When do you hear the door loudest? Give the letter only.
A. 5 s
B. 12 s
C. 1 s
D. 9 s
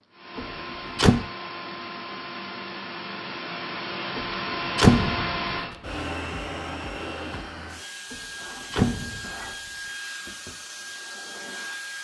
A.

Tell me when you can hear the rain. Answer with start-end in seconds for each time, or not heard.
not heard.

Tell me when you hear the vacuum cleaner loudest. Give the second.
5 s.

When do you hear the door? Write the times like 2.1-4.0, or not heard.
0.3-1.2, 4.2-5.3, 8.1-9.2.